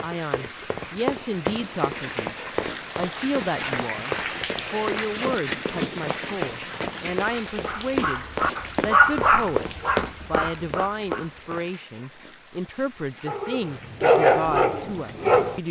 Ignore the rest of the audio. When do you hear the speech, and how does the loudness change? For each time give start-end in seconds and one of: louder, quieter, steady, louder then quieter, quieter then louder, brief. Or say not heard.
0.0-15.6 steady.